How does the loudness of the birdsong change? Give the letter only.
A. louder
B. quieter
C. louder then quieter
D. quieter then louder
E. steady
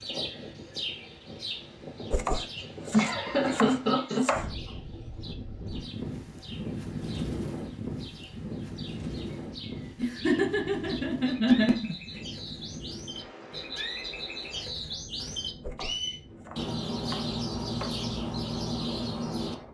D.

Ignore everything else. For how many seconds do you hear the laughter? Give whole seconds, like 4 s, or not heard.
4 s.